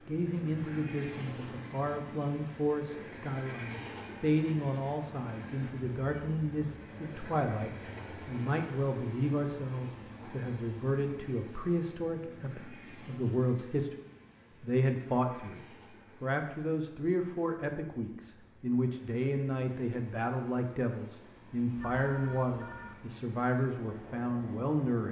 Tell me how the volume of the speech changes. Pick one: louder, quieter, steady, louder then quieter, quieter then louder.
steady.